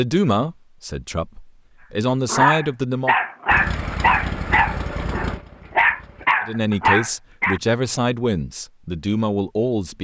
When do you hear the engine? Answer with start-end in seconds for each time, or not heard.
3.5-6.2.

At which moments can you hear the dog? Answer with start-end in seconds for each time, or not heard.
2.2-7.6.